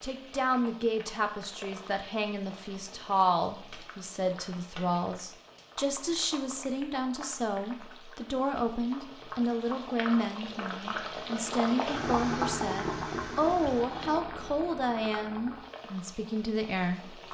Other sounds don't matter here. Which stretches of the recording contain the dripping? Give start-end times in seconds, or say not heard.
not heard.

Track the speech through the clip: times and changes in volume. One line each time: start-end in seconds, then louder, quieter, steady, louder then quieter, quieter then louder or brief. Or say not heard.
0.0-17.2 steady.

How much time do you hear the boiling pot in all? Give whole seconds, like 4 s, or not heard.
17 s.